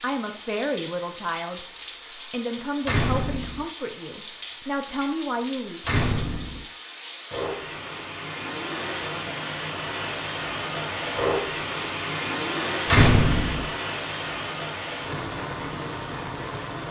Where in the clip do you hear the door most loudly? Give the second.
13 s.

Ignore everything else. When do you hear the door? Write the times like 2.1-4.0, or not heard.
2.9-3.6, 5.8-6.7, 12.8-13.7.